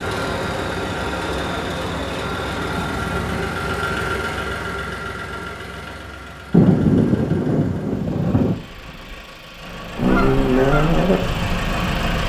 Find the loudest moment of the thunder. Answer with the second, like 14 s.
7 s.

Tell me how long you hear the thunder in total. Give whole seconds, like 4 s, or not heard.
2 s.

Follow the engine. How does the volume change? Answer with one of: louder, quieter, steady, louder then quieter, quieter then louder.
quieter then louder.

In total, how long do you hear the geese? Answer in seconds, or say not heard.
2 s.